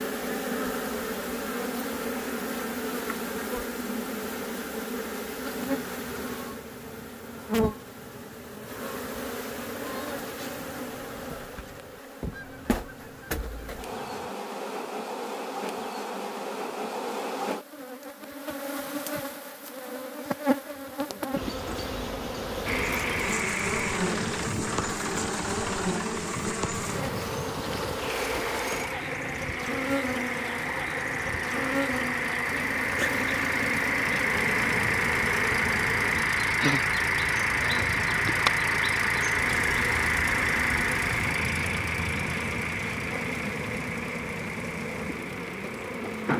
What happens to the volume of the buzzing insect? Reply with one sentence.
The loudness of the buzzing insect stays about the same.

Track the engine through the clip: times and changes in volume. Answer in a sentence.
You can hear the engine from 22.6 to 46.3 s, getting louder then quieter.